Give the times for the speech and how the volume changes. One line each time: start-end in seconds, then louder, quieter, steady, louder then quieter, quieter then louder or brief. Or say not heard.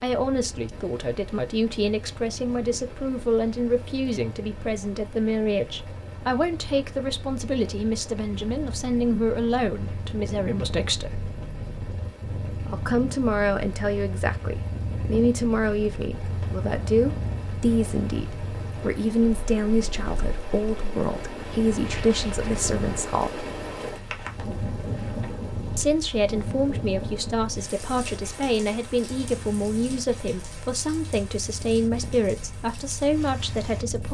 0.0-11.3 steady
12.7-23.4 steady
25.8-34.0 steady.